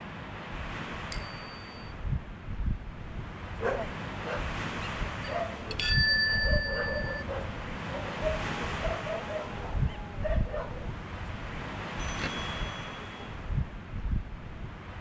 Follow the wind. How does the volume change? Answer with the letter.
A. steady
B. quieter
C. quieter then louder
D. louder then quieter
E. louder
A.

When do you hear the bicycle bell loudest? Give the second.
6 s.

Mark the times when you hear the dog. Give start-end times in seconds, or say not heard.
3.5-10.9.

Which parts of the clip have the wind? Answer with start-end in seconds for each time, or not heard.
0.0-14.9.